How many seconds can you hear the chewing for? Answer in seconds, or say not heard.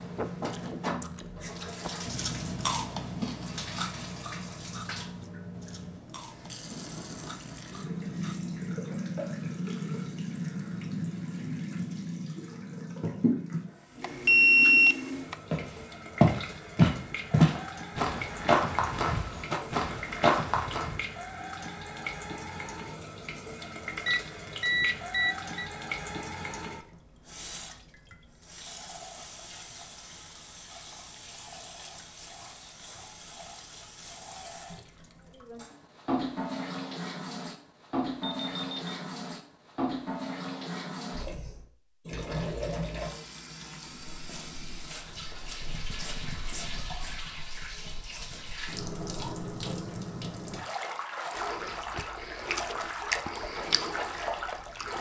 12 s.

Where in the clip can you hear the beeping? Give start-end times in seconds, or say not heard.
14.0-15.3, 24.1-25.7, 38.2-38.8.